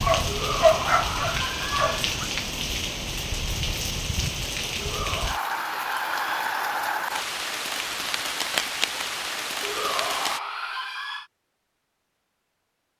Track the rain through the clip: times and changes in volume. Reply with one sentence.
You can hear the rain from 0.0 to 10.4 s, at a steady volume.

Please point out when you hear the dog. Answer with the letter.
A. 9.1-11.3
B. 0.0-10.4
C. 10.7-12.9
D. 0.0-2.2
D.